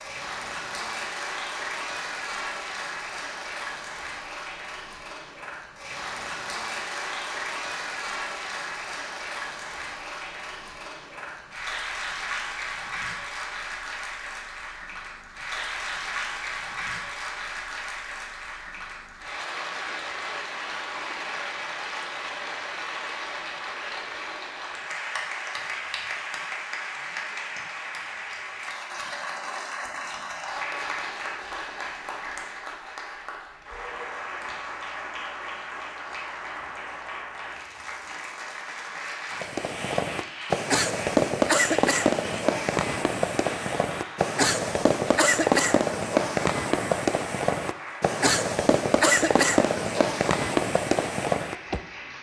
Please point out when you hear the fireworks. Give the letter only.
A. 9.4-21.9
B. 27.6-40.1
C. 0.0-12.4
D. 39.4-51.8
D.